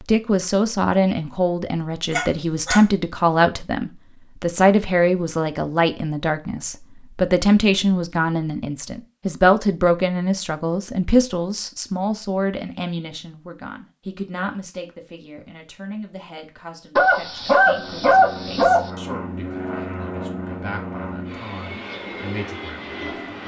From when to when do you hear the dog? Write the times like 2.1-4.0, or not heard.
2.1-2.9, 16.9-18.9.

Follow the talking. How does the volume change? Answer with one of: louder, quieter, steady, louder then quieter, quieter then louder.
quieter.